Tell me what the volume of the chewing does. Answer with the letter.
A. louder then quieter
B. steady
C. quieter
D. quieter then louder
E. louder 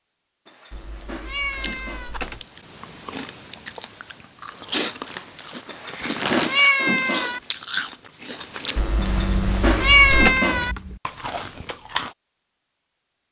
A.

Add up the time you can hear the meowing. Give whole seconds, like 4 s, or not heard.
5 s.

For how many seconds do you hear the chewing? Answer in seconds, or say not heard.
11 s.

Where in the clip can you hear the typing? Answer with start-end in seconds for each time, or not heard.
0.7-2.5, 8.8-10.4.